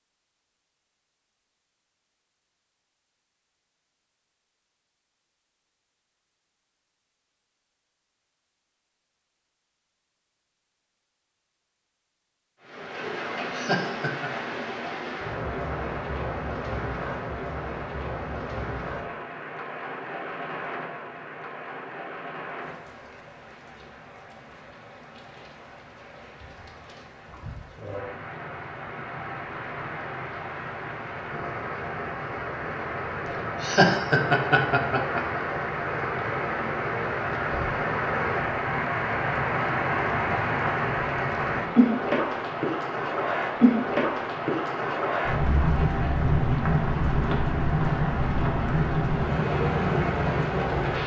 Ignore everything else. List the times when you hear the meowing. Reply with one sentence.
You can't hear the meowing here.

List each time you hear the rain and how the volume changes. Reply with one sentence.
You can hear the rain from 12.6 to 51.0 s, getting quieter then louder.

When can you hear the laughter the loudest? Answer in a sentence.
The volume of the laughter peaks at 34 seconds.